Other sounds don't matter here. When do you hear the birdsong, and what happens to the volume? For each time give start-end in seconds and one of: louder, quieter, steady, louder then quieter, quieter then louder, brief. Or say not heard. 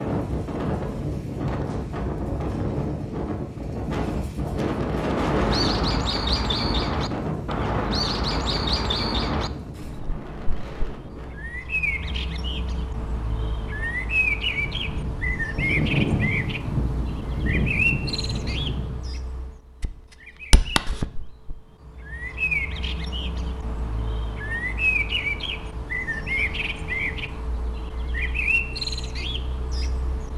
5.0-30.3 steady.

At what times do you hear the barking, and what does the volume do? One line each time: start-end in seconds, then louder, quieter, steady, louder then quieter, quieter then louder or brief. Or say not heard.
not heard.